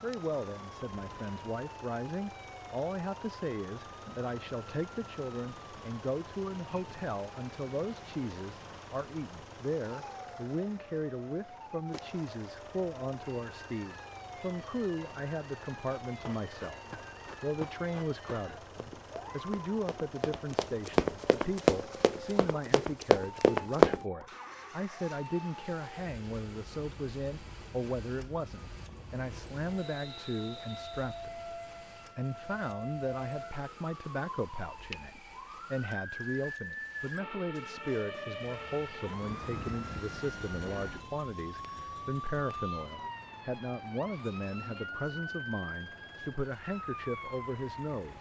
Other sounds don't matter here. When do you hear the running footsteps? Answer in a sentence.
The running footsteps can be heard from 16.1 to 24.0 s.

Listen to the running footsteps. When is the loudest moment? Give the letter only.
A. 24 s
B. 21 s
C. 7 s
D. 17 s
A.